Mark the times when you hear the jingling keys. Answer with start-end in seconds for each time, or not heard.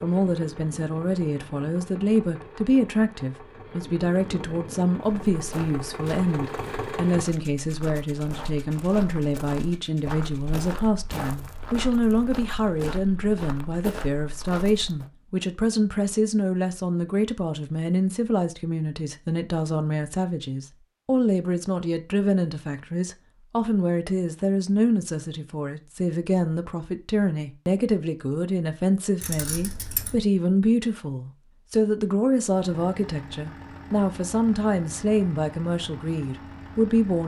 29.2-30.2.